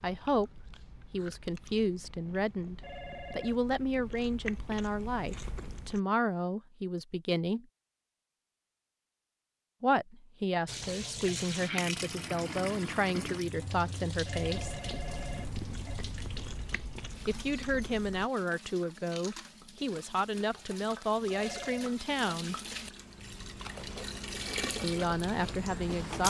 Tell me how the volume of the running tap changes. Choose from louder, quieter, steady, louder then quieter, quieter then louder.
quieter then louder.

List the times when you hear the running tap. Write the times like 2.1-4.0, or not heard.
10.7-26.2.